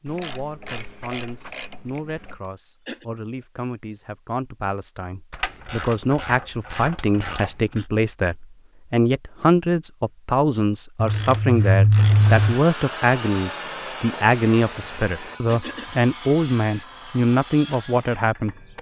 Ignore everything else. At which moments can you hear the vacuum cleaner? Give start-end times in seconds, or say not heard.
not heard.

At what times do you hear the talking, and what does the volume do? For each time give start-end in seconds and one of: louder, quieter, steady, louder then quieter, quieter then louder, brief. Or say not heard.
0.0-18.6 louder.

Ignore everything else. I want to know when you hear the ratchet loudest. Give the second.
12 s.